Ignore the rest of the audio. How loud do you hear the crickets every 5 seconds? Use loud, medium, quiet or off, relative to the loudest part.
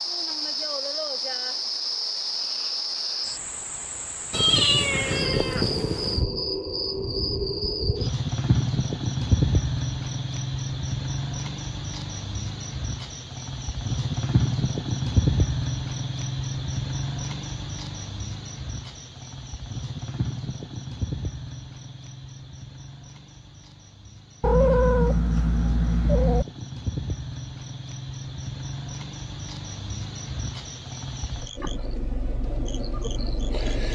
loud, loud, loud, loud, medium, medium, medium.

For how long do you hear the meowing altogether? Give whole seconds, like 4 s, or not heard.
4 s.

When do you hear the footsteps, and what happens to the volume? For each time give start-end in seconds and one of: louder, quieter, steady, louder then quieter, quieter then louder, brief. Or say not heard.
not heard.